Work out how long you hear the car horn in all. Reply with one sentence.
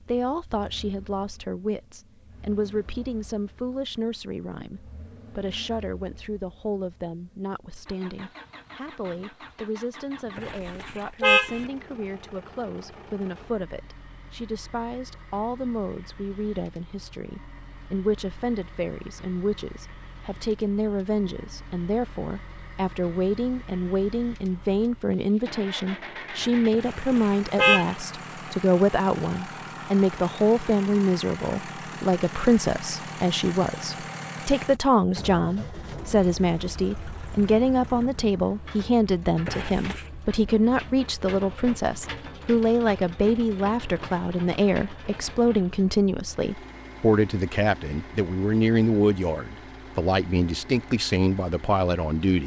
The car horn can be heard for 3 seconds in total.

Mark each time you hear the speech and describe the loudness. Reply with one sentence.
The speech can be heard from 0.1 to 52.4 s, getting louder.